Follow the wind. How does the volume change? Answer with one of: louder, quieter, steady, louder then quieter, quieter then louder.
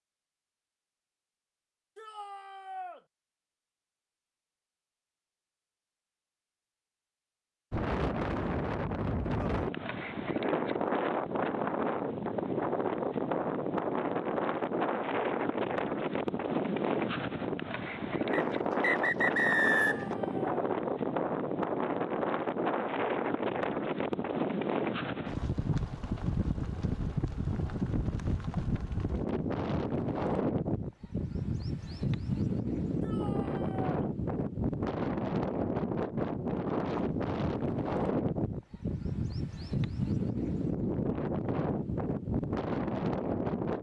steady.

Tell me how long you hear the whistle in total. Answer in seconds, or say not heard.
2 s.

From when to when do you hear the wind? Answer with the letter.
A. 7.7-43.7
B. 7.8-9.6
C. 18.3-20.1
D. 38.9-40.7
A.